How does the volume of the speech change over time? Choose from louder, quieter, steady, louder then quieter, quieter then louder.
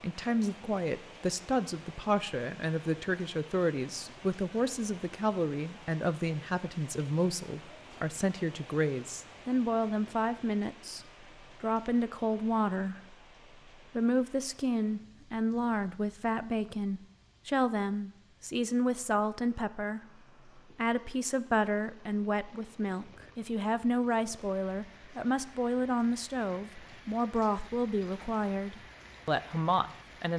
steady.